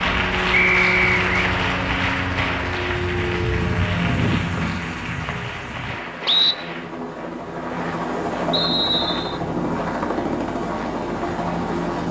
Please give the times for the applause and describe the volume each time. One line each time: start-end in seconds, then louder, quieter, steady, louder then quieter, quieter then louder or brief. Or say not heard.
0.0-7.0 quieter.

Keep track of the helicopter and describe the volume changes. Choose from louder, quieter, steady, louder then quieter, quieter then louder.
quieter then louder.